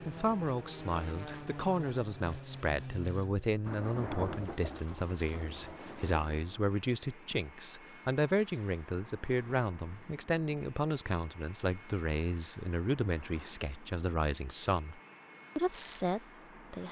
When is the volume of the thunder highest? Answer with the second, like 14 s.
4 s.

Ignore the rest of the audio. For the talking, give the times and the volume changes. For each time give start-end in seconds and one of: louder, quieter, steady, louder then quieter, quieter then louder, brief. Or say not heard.
0.0-16.8 steady.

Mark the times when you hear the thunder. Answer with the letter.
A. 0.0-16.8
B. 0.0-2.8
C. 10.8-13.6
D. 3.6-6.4
D.